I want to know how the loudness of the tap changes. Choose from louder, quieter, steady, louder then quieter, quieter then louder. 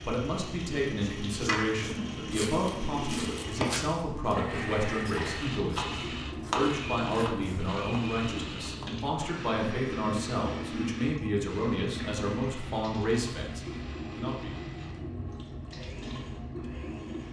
steady.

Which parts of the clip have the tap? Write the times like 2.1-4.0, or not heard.
0.0-17.2.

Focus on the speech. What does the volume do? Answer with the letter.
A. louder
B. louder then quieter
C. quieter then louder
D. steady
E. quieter
D.